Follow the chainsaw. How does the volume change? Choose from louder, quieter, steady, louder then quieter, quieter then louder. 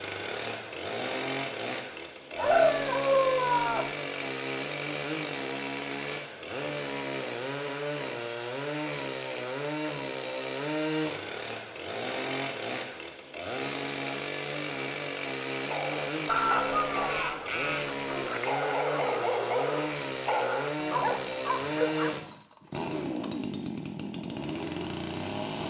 steady.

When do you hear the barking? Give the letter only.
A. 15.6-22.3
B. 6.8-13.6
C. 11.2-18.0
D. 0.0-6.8
A.